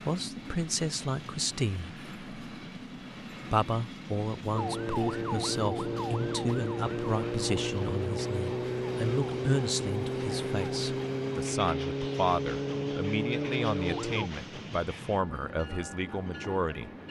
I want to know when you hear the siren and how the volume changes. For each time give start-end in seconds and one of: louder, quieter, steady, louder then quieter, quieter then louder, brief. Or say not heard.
4.5-14.3 steady.